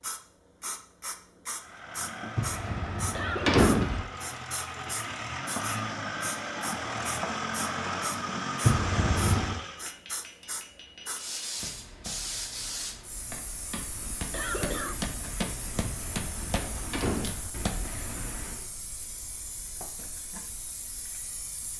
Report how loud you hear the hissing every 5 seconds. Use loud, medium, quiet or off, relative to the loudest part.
loud, loud, loud, medium, medium.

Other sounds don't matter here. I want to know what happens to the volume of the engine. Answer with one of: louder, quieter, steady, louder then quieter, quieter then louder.
louder.